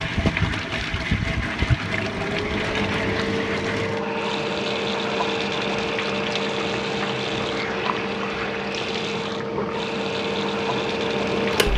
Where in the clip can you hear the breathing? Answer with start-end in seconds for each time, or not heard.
not heard.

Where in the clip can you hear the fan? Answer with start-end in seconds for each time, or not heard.
0.0-11.7.